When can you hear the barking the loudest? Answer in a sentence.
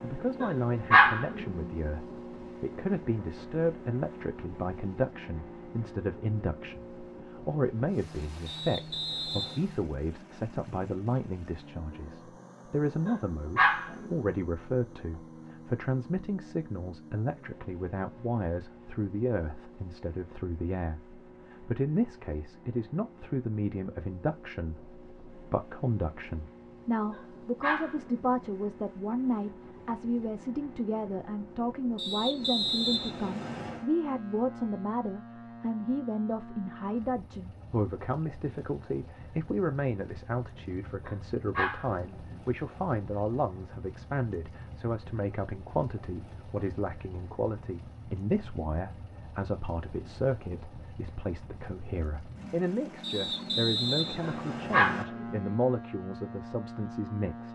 The volume of the barking peaks at 1 second.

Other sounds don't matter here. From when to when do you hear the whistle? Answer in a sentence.
The whistle can be heard from 8.4 to 9.7 s, from 31.9 to 33.9 s and from 53.0 to 55.0 s.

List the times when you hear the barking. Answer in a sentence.
You can hear the barking from 0.4 to 1.7 s, from 13.1 to 14.3 s, from 27.1 to 28.4 s, from 41.0 to 42.4 s and from 54.2 to 55.4 s.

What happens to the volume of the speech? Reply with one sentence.
The loudness of the speech stays about the same.